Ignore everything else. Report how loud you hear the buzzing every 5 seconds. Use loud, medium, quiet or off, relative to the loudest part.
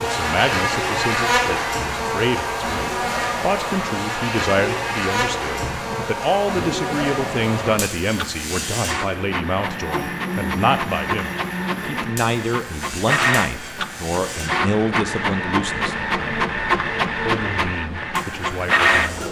loud, medium, medium, quiet.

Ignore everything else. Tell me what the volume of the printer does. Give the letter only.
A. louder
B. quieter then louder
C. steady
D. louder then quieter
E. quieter
A.